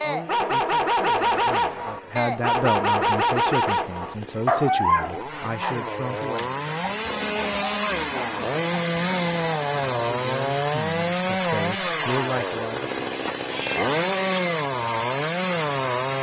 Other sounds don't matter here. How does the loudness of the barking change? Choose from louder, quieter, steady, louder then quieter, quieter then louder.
quieter.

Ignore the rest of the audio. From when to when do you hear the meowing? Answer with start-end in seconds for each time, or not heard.
13.3-14.4.